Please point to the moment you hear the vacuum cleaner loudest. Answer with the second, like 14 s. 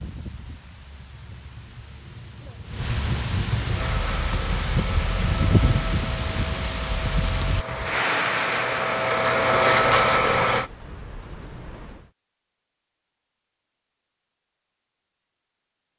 10 s.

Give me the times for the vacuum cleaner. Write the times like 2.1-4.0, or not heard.
3.7-10.7.